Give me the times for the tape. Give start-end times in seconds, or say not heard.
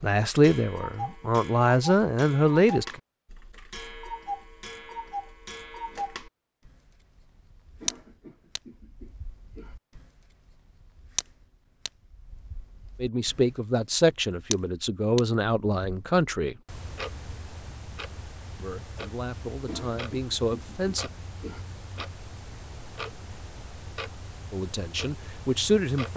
not heard.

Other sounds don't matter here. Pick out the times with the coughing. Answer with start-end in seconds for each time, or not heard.
7.8-9.8, 19.6-21.6.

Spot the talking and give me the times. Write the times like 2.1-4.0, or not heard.
0.0-3.0, 13.0-16.6, 18.6-21.1, 24.5-26.1.